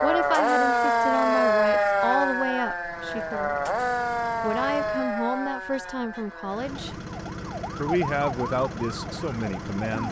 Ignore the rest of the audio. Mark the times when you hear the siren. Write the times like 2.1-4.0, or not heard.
0.0-10.0.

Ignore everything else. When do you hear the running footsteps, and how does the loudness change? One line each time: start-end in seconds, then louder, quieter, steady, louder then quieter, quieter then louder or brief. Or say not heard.
not heard.